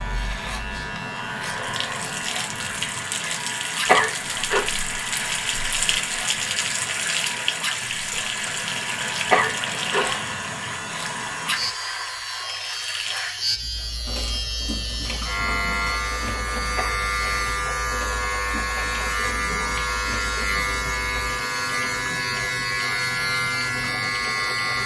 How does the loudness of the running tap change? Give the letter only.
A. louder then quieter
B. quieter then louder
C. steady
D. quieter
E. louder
D.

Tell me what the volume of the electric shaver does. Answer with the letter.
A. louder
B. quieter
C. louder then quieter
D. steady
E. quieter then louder
A.